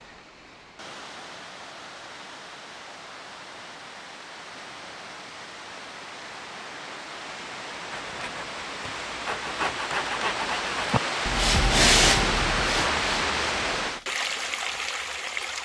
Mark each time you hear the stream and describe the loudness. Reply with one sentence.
You can hear the stream from 0.0 to 15.5 s, getting louder.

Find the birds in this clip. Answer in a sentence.
The birds can't be heard in this clip.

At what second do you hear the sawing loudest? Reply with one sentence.
The loudest moment of the sawing is at 12 seconds.